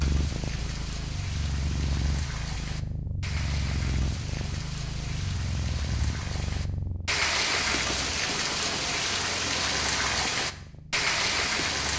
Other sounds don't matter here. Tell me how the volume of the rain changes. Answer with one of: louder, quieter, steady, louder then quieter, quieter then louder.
louder.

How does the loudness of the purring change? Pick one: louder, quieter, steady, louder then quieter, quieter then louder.
quieter.